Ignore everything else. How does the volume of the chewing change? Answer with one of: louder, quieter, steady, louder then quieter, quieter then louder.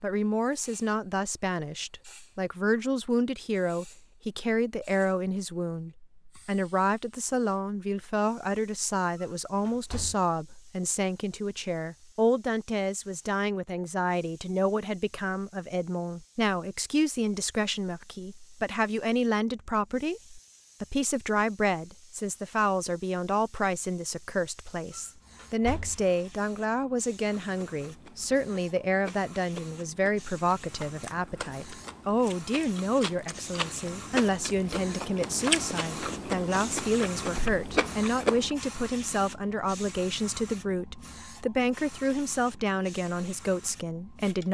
louder.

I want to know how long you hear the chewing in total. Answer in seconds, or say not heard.
11 s.